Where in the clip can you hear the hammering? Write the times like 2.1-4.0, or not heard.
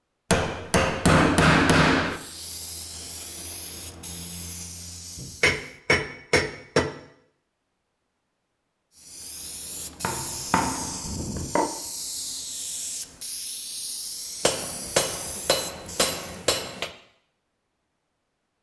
0.3-2.2, 5.4-6.8, 10.0-11.7, 14.4-16.9.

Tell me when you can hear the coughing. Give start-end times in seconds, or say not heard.
not heard.